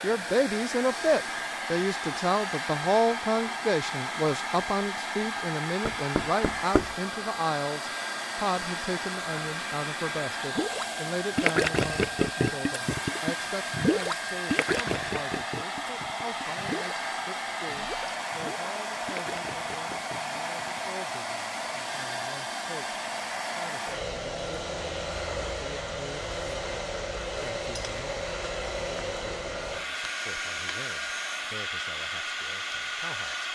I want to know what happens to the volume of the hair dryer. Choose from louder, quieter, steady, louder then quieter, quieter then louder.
steady.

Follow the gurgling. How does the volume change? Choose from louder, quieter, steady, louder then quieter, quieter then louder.
quieter.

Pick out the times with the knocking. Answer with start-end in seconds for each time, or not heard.
5.8-7.0.